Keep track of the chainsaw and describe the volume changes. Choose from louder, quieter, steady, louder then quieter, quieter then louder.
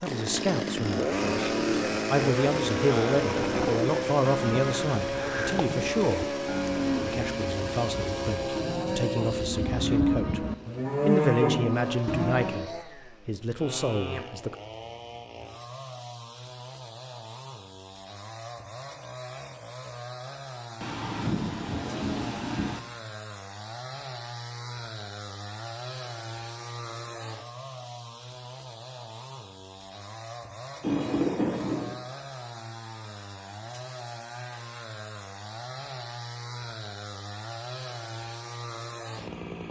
quieter.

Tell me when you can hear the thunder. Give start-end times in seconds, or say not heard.
3.2-3.8, 20.8-22.8, 30.8-31.9.